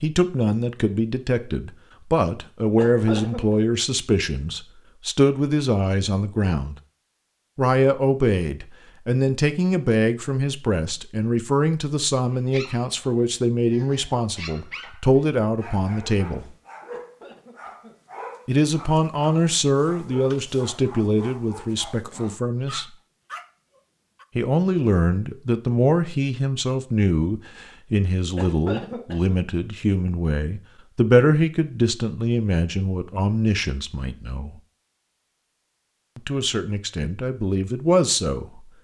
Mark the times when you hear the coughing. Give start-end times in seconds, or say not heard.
2.8-3.4, 16.9-17.9, 28.4-29.4.